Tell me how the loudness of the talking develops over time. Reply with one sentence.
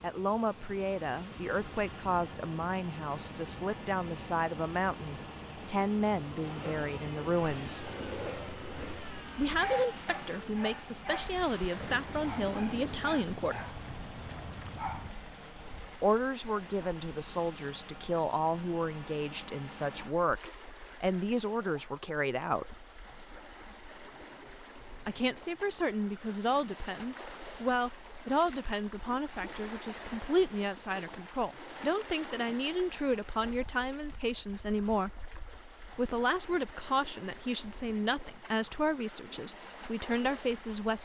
The volume of the talking stays about the same.